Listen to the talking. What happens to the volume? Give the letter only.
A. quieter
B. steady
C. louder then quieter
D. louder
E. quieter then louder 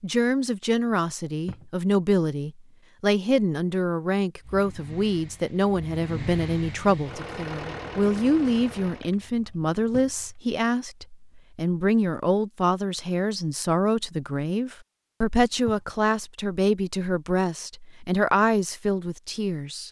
B.